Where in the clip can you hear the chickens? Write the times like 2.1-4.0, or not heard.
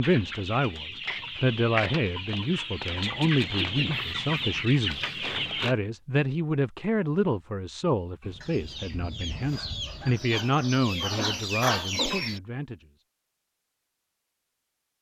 0.0-5.8, 8.2-12.4.